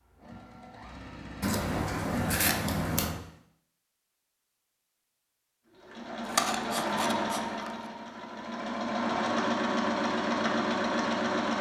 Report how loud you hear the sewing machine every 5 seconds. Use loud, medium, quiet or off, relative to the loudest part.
quiet, loud, loud.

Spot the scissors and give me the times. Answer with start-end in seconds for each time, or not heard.
1.4-3.2, 6.2-7.7.